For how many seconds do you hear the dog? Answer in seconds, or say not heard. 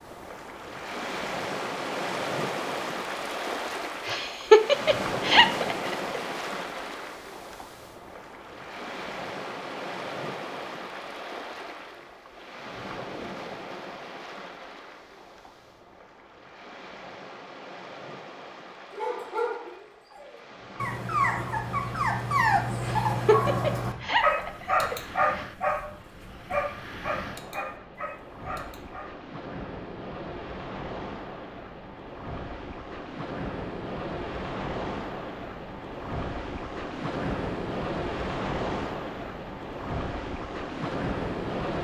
10 s.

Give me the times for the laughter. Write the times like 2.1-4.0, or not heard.
4.0-6.0, 22.8-25.4.